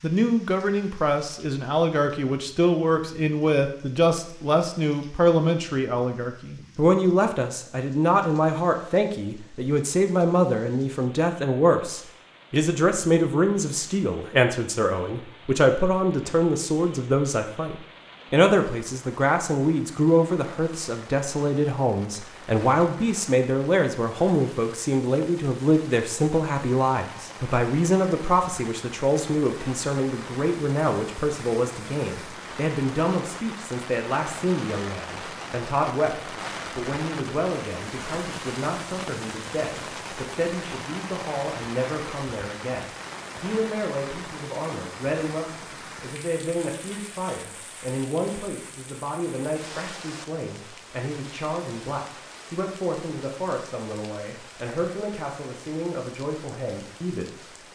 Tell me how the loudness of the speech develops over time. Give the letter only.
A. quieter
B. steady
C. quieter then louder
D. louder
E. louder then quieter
A.